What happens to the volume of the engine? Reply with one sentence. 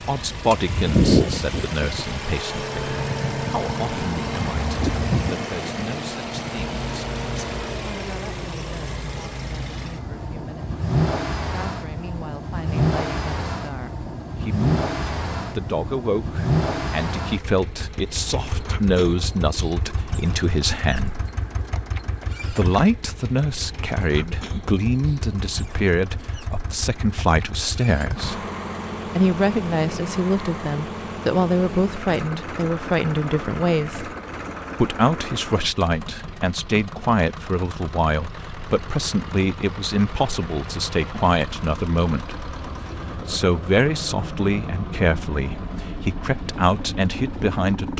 The loudness of the engine goes down.